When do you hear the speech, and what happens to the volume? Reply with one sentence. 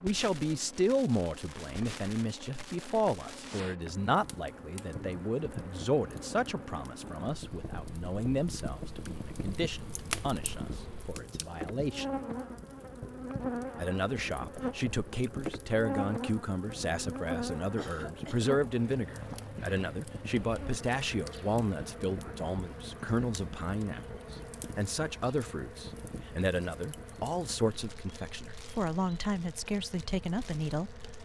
You can hear the speech from 0.0 to 12.1 s, getting quieter; and from 13.8 to 30.9 s, at a steady volume.